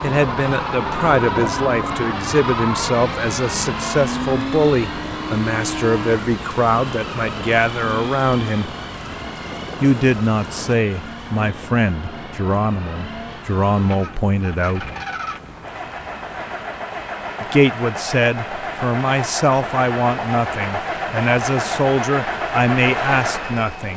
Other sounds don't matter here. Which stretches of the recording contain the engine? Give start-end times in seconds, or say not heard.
0.0-23.9.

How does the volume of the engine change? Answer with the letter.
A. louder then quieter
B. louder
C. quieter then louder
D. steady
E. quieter
C.